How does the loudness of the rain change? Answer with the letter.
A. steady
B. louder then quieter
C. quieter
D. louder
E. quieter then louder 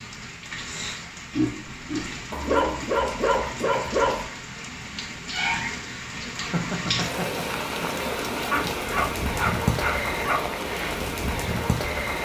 D.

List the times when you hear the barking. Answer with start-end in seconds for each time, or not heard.
2.3-4.2, 8.5-10.4.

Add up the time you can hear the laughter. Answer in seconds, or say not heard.
3 s.